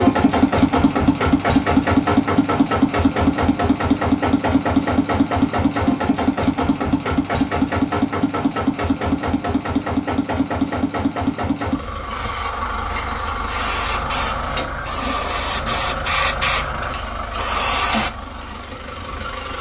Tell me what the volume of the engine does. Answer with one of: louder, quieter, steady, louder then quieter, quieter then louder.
quieter.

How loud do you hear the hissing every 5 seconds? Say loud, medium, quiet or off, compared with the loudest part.
off, off, medium, loud.